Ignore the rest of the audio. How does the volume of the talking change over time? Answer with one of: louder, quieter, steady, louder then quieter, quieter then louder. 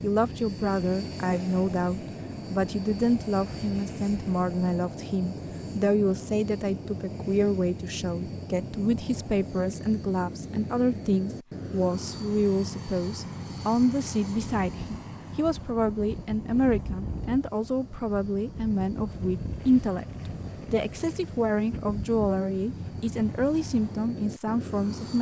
steady.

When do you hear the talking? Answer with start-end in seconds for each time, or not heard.
0.0-20.1, 20.7-25.1.